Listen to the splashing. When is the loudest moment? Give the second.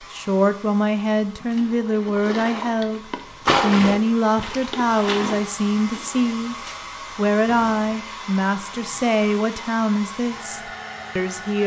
4 s.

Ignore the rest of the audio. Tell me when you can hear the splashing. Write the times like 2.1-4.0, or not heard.
1.2-6.3.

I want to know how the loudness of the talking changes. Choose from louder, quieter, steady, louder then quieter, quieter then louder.
steady.